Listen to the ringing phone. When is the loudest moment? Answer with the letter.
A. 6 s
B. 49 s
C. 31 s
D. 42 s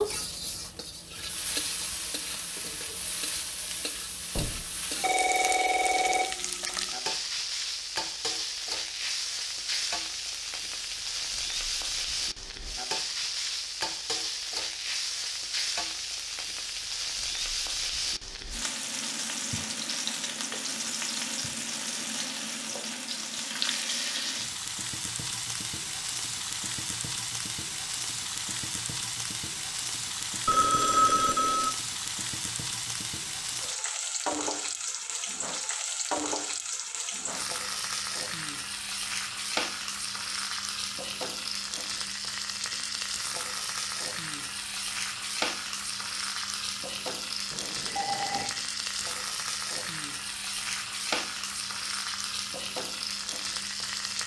C.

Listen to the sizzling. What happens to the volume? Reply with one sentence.
The loudness of the sizzling stays about the same.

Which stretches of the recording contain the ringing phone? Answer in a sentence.
You can hear the ringing phone from 4.3 to 6.3 s, from 30.4 to 31.7 s and from 47.5 to 48.5 s.